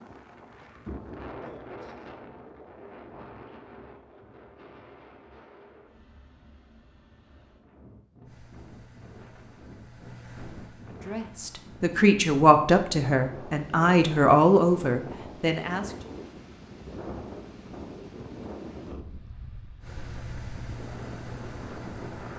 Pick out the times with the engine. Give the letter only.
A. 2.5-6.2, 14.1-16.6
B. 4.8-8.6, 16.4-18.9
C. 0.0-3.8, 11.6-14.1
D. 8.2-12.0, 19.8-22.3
D.